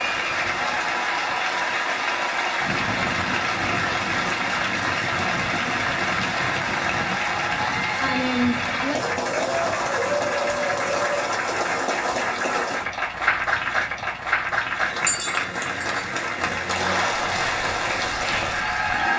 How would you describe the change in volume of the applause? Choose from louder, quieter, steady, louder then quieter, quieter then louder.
steady.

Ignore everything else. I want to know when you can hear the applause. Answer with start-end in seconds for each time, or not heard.
0.0-19.1.